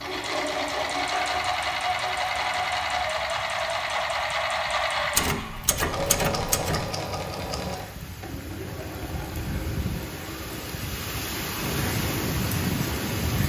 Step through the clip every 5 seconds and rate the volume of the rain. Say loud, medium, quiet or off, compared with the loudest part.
quiet, medium, loud.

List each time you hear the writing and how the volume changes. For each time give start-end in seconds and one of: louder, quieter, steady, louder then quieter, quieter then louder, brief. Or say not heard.
not heard.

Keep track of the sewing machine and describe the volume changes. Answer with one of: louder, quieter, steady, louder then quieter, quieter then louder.
quieter.